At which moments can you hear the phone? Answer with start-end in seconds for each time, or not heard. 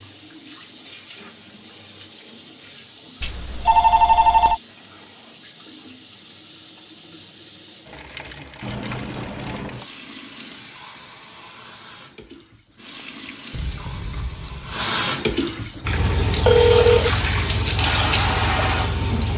3.2-4.6, 8.6-9.9, 16.4-17.1.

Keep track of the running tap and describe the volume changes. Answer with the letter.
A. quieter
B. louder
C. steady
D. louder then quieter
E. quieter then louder
B.